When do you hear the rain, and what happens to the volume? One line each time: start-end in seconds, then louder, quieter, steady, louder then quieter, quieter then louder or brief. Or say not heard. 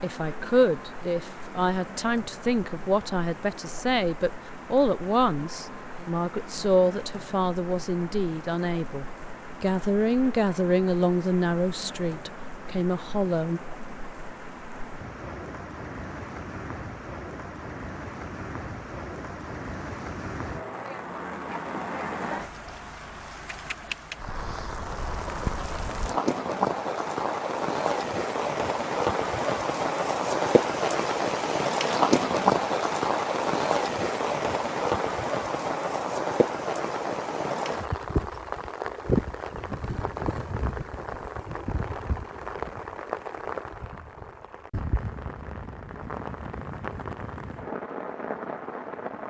0.0-49.2 louder then quieter.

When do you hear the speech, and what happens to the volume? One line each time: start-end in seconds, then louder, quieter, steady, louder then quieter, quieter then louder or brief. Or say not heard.
0.0-13.6 steady.